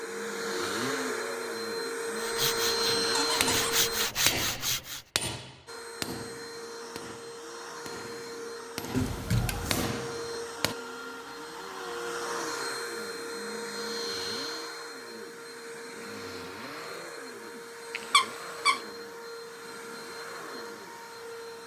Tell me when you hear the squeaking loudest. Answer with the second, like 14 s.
18 s.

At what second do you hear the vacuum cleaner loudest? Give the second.
3 s.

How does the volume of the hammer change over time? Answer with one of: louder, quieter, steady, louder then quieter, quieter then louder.
quieter then louder.